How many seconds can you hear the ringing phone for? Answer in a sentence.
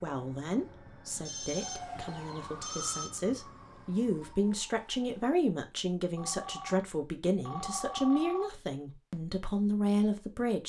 The ringing phone can be heard for 4 seconds in total.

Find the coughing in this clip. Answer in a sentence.
The coughing can't be heard in this clip.